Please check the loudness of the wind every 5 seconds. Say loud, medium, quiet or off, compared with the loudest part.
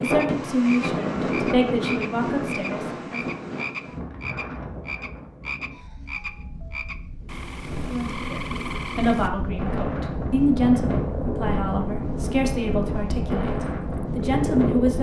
loud, medium, loud.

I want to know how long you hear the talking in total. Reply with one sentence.
You can hear the talking for 10 seconds altogether.